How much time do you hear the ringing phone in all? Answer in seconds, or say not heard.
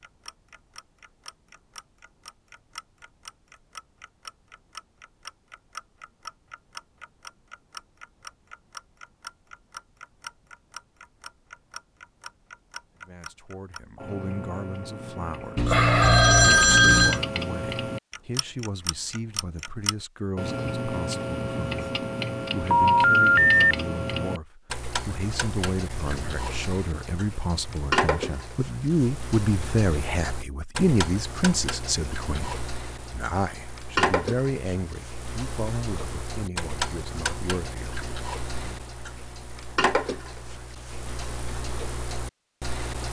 3 s.